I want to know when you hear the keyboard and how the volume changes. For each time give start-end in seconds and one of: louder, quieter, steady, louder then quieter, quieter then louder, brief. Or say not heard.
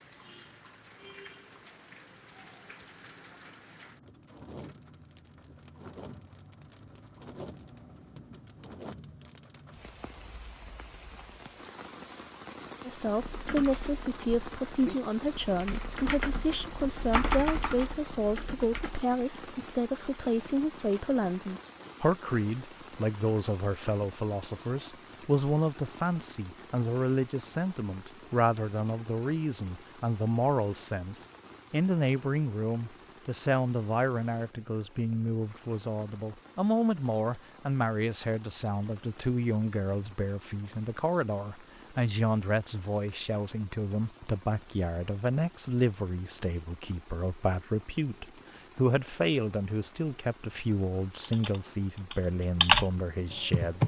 13.2-19.0 louder then quieter
51.2-53.8 brief.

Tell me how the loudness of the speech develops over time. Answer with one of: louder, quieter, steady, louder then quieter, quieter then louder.
steady.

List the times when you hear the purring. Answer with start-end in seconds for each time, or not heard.
not heard.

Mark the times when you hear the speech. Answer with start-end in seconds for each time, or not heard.
12.8-53.8.